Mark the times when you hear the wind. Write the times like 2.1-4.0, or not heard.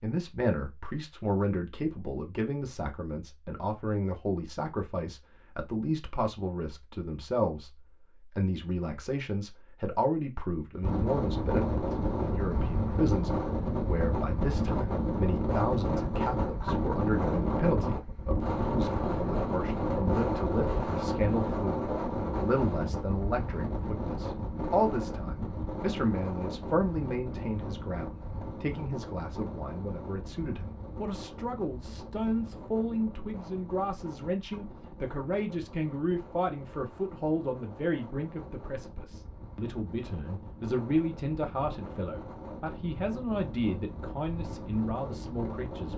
10.8-45.9.